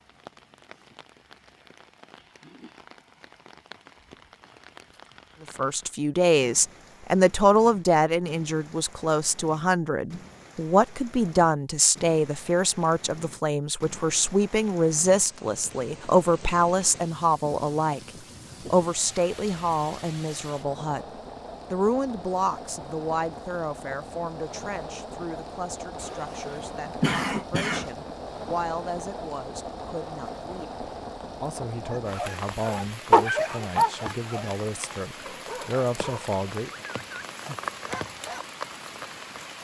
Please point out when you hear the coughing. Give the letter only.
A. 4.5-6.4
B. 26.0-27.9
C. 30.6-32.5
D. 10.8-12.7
B.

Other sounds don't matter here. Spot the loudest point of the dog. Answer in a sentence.
The loudest moment of the dog is at 33 seconds.